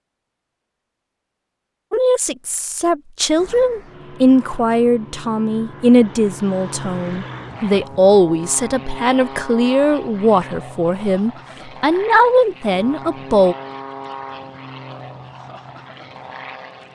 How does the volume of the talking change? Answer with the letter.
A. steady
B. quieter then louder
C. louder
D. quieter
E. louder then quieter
A.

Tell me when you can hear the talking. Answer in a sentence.
You can hear the talking from 1.9 to 13.6 s.